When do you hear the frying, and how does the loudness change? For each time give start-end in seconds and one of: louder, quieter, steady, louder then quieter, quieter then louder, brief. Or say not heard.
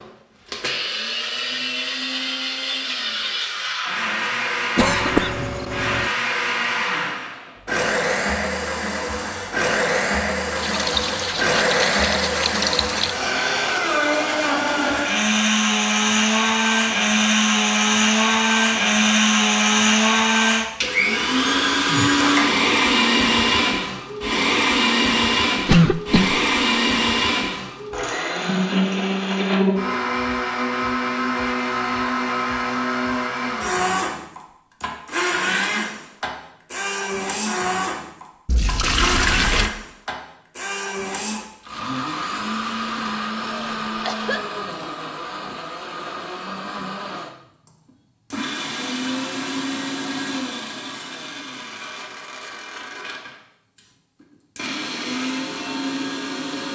not heard.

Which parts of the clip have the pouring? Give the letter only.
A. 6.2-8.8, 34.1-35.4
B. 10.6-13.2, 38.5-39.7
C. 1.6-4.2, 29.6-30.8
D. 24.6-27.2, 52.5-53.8
B.